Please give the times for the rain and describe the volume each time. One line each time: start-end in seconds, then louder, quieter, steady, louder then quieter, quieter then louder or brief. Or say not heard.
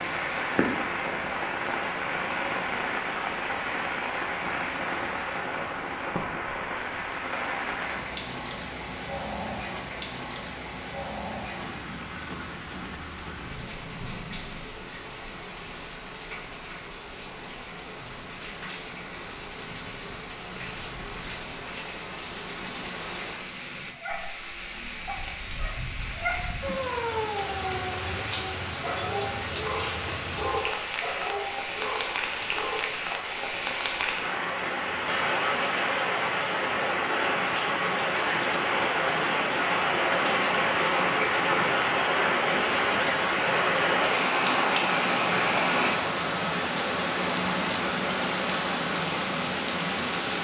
0.0-50.3 quieter then louder.